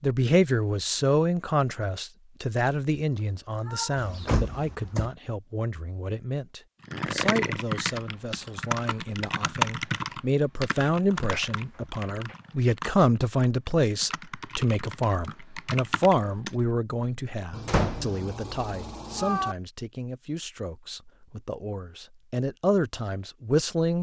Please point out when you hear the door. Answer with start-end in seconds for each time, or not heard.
4.0-5.1, 17.6-18.1.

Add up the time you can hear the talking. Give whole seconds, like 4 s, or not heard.
24 s.